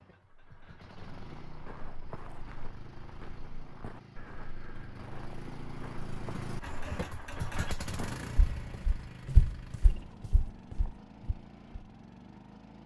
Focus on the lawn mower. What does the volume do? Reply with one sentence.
The loudness of the lawn mower goes up, then down.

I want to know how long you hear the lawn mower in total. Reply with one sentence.
You can hear the lawn mower for 13 seconds altogether.